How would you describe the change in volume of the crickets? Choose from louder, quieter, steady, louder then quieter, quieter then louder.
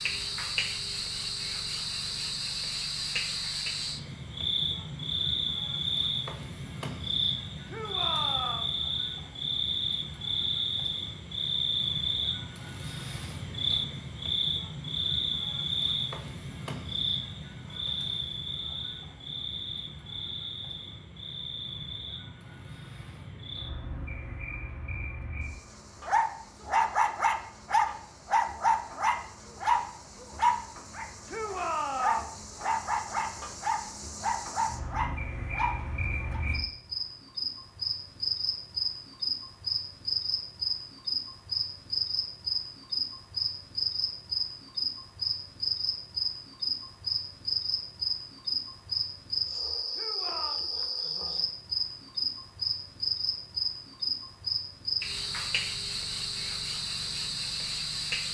quieter then louder.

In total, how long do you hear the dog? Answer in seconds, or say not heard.
10 s.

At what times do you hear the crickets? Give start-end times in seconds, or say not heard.
0.0-58.3.